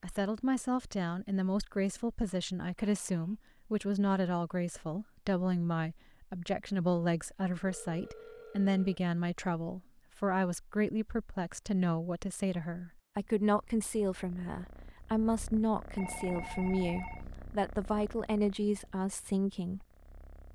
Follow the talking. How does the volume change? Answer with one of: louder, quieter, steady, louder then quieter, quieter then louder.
steady.